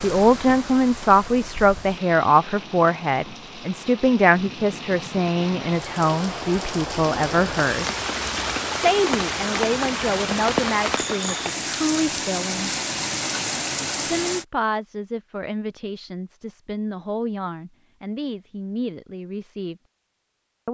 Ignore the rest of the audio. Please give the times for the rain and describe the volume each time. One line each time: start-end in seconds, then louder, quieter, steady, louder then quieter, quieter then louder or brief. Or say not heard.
0.0-14.4 louder.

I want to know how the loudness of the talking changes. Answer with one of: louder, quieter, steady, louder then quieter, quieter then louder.
quieter.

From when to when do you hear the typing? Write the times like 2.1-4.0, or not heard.
not heard.